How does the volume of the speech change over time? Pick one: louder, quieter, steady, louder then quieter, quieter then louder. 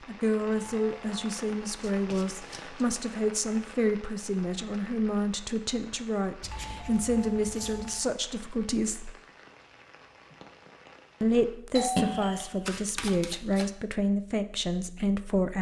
steady.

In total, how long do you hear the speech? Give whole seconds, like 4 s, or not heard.
13 s.